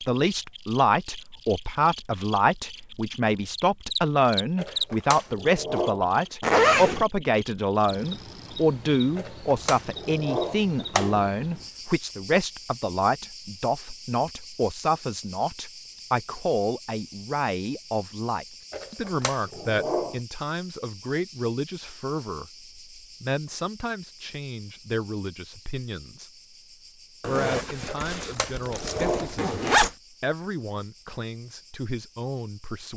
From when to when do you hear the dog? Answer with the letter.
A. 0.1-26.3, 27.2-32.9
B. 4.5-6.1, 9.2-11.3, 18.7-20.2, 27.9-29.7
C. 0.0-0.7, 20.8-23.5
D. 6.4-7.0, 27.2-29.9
B.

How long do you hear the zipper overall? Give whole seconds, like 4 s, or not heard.
3 s.